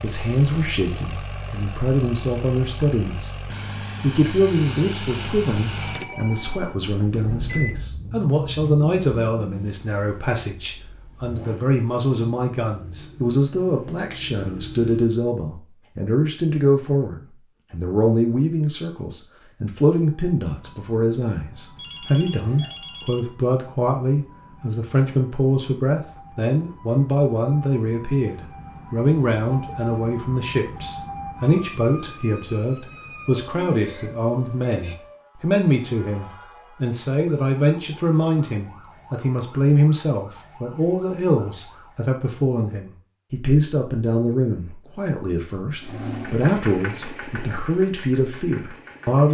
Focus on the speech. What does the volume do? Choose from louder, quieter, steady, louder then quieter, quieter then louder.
steady.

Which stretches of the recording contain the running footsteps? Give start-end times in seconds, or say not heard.
not heard.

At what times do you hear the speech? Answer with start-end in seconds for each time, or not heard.
0.0-3.3, 4.0-49.2.